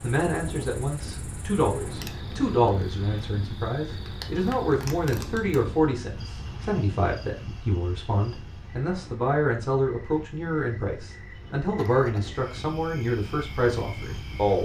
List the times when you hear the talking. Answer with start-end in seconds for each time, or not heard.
0.0-14.6.